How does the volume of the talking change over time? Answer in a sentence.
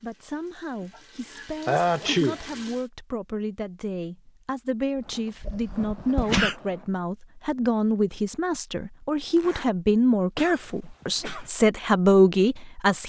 The loudness of the talking goes up.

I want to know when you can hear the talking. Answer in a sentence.
The talking can be heard from 0.0 to 13.0 s.